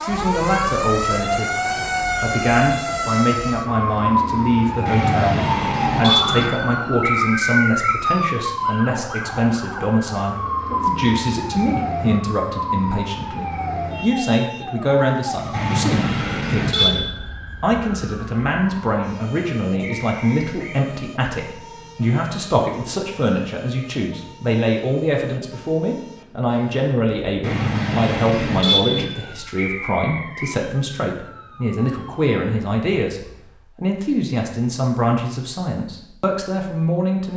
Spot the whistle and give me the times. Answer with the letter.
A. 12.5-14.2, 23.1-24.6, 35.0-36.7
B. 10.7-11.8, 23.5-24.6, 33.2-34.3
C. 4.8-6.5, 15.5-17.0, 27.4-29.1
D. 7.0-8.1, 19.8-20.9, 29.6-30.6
D.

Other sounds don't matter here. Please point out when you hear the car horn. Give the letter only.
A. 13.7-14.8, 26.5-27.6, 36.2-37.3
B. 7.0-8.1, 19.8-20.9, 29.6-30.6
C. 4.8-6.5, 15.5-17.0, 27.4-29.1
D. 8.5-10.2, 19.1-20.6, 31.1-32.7
C.